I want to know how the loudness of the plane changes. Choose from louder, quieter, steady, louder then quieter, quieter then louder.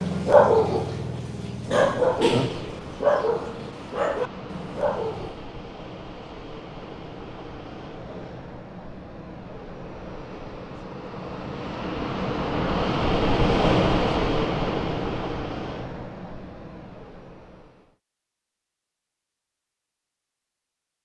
louder then quieter.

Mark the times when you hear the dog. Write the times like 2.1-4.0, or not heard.
0.0-5.5.